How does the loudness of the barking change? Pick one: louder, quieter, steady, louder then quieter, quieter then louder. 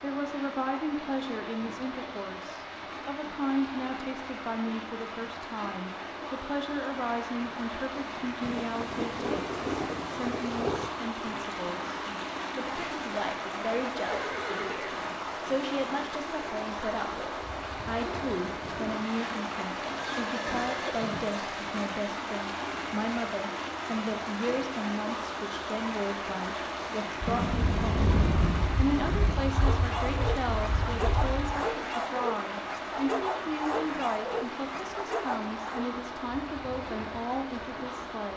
steady.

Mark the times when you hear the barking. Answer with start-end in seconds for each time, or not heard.
29.4-35.9.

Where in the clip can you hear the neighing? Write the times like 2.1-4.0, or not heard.
14.1-14.8, 19.9-21.6.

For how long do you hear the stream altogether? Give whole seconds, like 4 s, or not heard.
38 s.